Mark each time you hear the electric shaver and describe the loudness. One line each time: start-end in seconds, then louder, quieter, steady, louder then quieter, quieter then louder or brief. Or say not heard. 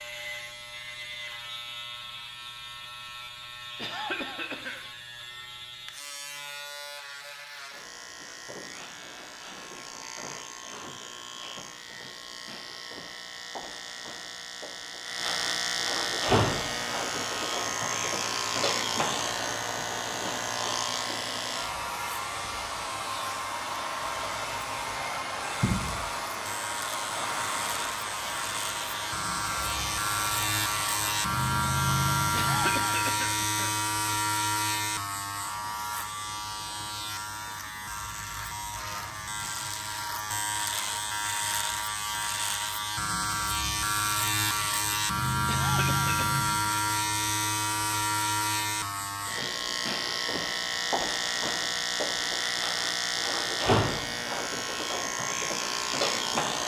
0.0-56.6 louder.